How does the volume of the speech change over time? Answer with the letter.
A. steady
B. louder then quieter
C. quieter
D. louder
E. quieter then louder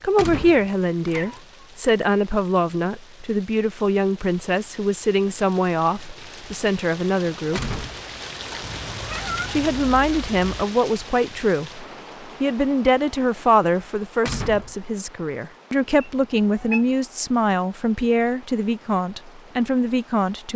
A.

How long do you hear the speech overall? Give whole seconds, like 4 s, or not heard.
19 s.